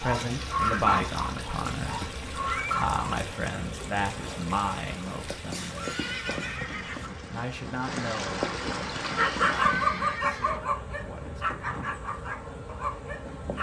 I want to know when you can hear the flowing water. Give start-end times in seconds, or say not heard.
0.0-9.9.